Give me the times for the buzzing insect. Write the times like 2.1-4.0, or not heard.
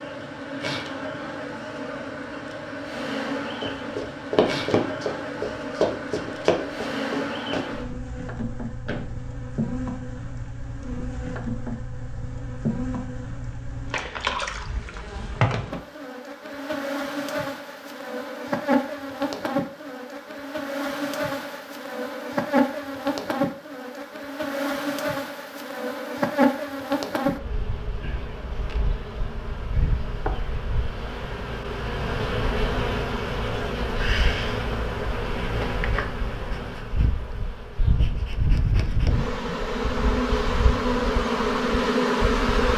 0.0-42.7.